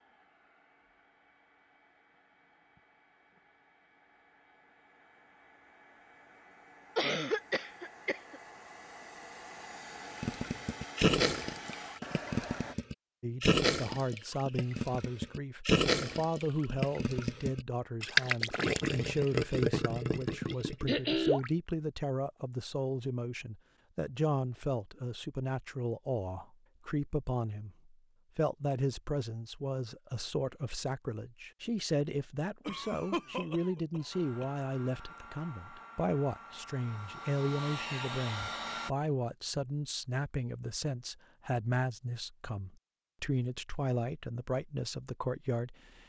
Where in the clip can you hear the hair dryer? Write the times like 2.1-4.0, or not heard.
0.0-12.8, 34.1-38.9.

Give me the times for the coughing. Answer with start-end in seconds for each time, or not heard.
7.0-8.4, 20.2-21.4, 32.6-34.5.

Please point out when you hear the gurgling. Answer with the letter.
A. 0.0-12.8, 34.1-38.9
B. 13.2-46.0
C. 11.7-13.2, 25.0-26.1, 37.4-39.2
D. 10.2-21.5
D.